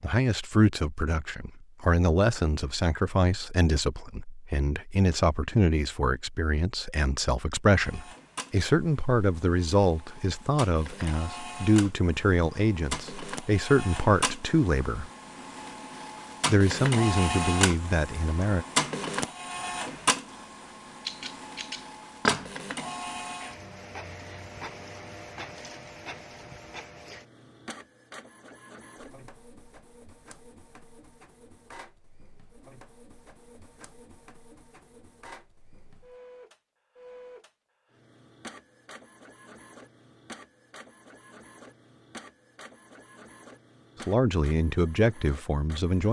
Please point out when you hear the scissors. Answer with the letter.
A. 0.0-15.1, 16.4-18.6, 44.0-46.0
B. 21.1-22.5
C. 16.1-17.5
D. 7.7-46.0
B.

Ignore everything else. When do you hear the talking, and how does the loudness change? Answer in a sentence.
The talking can be heard from 0.0 to 15.1 s, at a steady volume; briefly from 16.4 to 18.6 s; and briefly from 44.0 to 46.0 s.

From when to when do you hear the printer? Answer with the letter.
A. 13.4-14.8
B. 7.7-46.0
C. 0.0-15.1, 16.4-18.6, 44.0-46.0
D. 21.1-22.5
B.